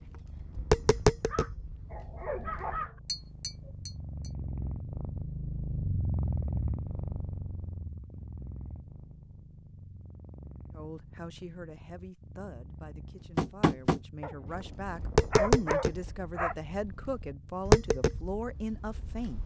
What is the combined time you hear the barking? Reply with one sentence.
You can hear the barking for 4 seconds altogether.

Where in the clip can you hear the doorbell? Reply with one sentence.
You can't hear the doorbell here.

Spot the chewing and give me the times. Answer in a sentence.
You can't hear the chewing here.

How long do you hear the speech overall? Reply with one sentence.
You can hear the speech for 9 seconds altogether.